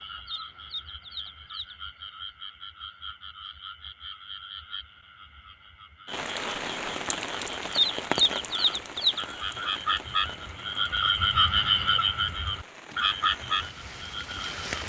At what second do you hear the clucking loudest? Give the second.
8 s.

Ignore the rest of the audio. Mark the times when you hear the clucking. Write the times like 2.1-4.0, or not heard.
0.0-1.8, 7.7-9.2.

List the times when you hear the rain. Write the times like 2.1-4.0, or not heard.
6.0-14.8.